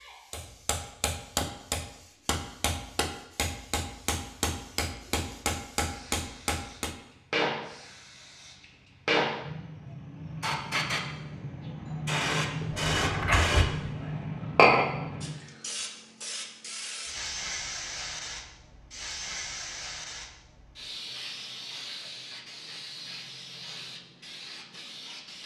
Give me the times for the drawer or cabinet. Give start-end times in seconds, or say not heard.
12.6-13.8.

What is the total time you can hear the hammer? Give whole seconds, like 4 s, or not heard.
7 s.